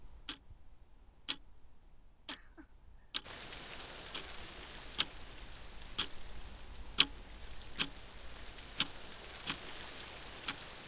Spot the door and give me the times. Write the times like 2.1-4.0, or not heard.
not heard.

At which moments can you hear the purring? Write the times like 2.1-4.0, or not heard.
not heard.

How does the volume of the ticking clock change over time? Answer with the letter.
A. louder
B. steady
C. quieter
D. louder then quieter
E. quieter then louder
A.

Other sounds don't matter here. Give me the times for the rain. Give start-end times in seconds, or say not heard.
3.2-10.8.